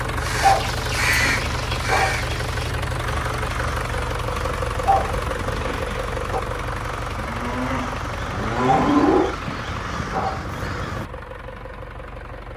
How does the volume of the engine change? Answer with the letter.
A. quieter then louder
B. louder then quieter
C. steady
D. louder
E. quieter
E.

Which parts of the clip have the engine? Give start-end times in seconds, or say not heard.
0.0-12.5.